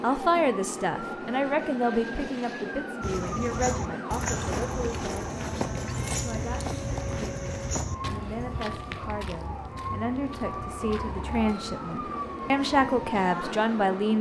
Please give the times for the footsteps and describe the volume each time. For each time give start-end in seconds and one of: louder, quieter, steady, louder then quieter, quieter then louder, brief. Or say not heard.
3.0-13.2 quieter.